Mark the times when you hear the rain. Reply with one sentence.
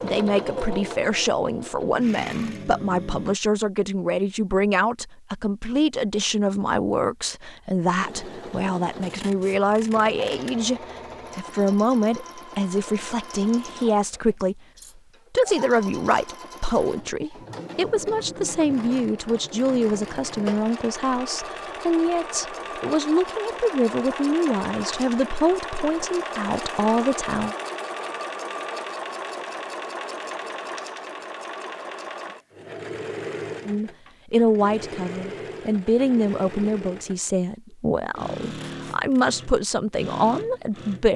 The rain can't be heard in this clip.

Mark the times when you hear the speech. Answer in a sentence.
You can hear the speech from 0.0 to 14.6 s, from 15.3 to 27.6 s and from 33.6 to 41.1 s.